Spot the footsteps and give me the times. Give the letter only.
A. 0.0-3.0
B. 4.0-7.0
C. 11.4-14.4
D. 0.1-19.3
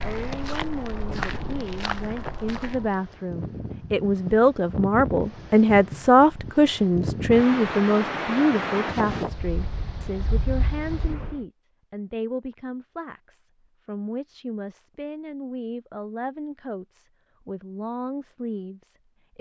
A.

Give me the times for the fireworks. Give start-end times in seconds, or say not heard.
not heard.